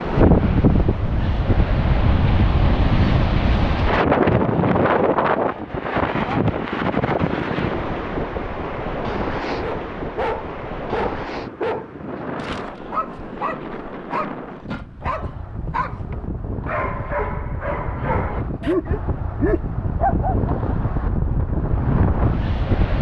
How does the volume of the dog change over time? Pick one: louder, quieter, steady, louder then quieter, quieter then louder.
quieter then louder.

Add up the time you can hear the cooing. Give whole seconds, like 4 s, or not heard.
not heard.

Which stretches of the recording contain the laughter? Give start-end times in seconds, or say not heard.
not heard.